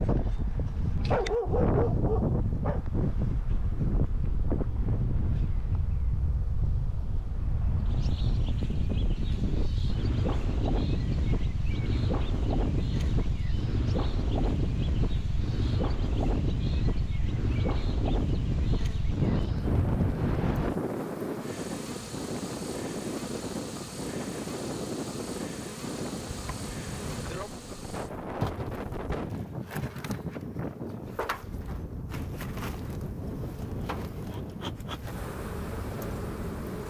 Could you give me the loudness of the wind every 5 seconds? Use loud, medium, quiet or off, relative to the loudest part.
loud, loud, loud, loud, loud, medium, medium, medium.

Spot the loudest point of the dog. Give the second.
1 s.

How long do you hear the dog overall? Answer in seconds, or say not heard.
2 s.